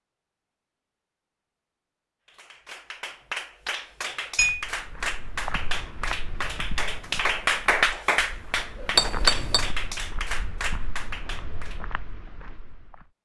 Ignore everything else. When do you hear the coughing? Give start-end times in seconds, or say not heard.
not heard.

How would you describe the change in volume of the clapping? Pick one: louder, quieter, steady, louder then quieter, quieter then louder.
louder then quieter.